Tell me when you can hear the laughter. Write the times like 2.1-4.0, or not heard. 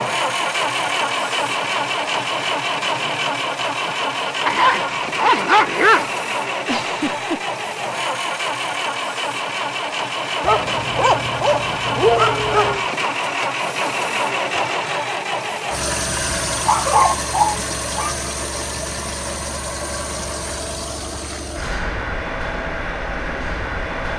6.7-7.5.